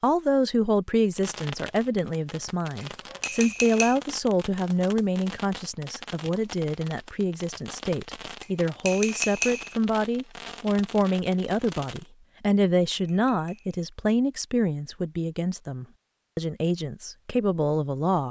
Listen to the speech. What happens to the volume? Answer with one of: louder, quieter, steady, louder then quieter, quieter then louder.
steady.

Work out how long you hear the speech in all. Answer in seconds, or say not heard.
18 s.